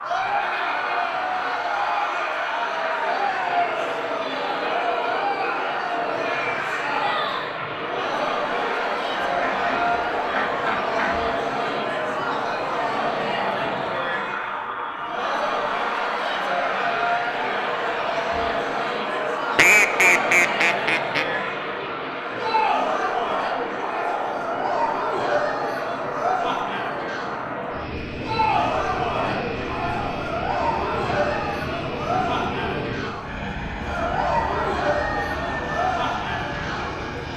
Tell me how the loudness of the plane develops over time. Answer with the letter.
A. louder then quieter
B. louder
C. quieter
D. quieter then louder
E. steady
E.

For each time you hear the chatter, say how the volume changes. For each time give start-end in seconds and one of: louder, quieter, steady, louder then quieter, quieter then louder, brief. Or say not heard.
0.0-37.3 steady.